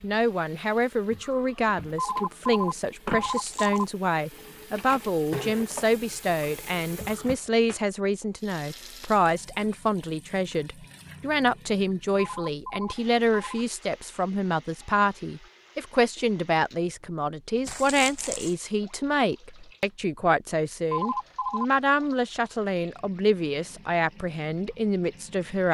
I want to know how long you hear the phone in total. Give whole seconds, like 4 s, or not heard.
4 s.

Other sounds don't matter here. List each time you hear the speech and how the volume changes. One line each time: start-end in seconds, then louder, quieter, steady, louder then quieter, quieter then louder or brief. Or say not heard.
0.0-25.6 steady.